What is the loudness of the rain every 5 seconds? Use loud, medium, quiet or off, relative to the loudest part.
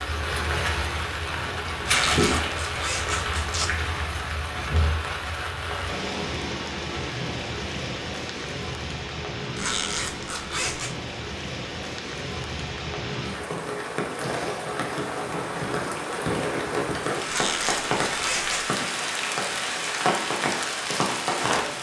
loud, medium, medium, loud, loud.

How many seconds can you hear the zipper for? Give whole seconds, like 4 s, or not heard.
5 s.